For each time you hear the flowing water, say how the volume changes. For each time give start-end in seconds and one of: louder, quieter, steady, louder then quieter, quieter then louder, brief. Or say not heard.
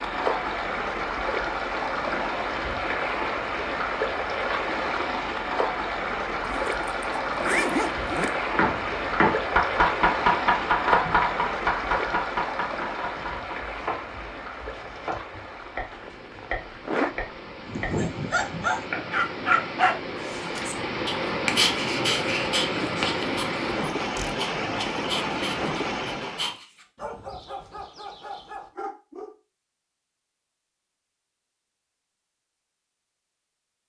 0.0-26.6 quieter then louder.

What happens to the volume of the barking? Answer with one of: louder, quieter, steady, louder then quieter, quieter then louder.
quieter.